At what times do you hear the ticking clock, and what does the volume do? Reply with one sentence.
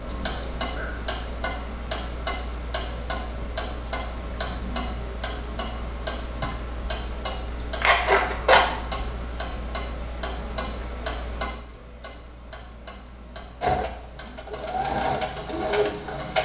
The ticking clock can be heard from 0.0 to 16.4 s, getting quieter.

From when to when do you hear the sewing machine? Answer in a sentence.
You can hear the sewing machine from 13.6 to 16.4 s.